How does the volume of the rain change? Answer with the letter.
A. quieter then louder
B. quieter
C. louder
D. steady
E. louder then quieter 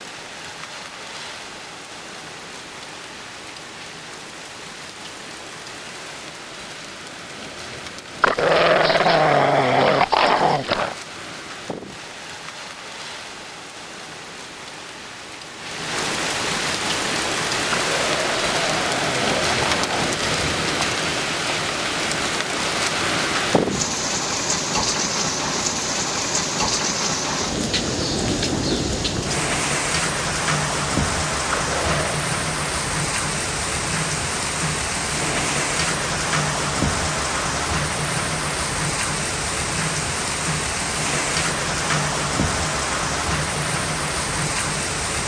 C.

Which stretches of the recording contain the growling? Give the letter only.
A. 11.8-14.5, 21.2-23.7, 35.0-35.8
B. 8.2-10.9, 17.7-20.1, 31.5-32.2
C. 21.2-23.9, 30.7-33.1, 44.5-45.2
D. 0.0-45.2
B.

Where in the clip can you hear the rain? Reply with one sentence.
The rain can be heard from 0.0 to 45.2 s.